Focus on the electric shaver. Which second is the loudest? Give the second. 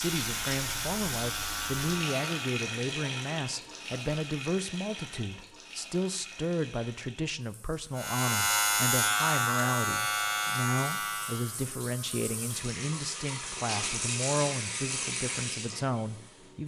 9 s.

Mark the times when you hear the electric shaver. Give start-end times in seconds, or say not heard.
0.0-2.6, 8.0-11.7.